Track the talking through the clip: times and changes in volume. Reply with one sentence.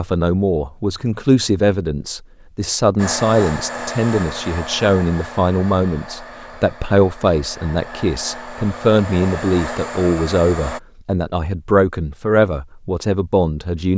The talking can be heard from 0.0 to 13.9 s, at a steady volume.